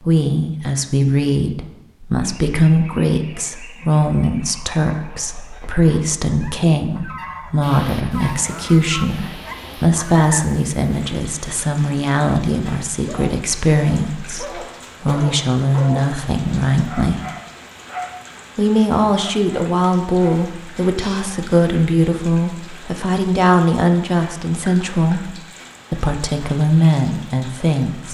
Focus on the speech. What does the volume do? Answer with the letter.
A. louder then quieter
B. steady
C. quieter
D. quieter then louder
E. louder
B.